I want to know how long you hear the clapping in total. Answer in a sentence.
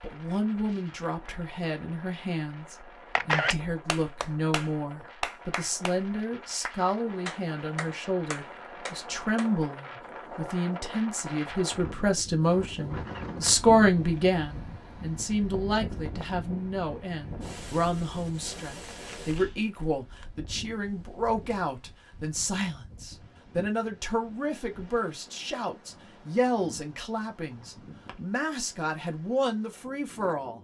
You can hear the clapping for 6 seconds altogether.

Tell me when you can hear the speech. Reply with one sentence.
You can hear the speech from 0.0 to 30.5 s.